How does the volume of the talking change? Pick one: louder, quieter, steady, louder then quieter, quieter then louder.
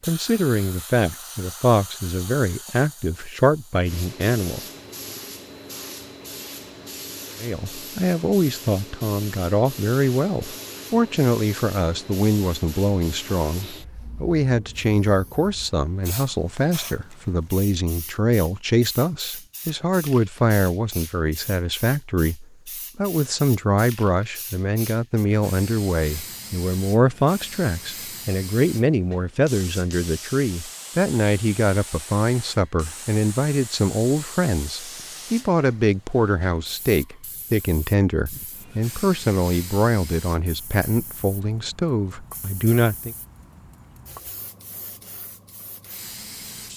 steady.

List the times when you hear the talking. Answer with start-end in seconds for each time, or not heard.
0.0-4.6, 7.4-43.1.